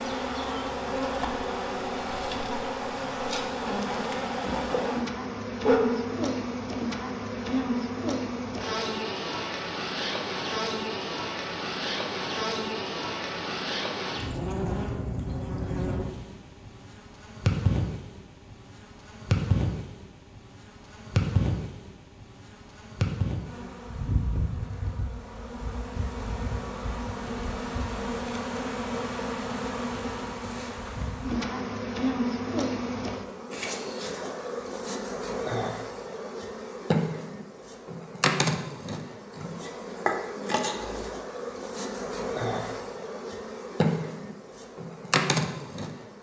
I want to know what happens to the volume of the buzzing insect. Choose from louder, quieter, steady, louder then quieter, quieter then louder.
steady.